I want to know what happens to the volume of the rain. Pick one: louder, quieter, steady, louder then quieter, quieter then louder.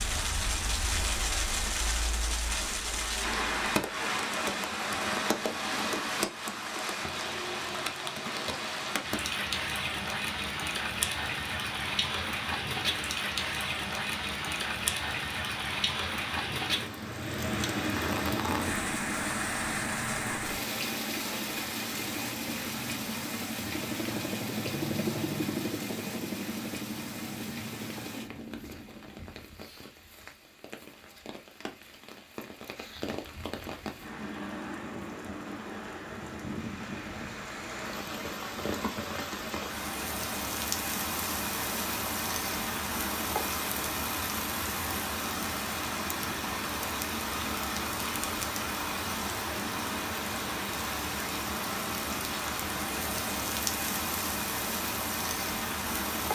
quieter then louder.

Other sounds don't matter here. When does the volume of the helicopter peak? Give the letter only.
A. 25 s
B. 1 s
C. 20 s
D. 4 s
A.